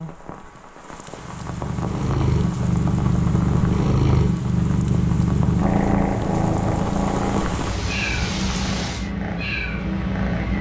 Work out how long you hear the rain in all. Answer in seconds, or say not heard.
9 s.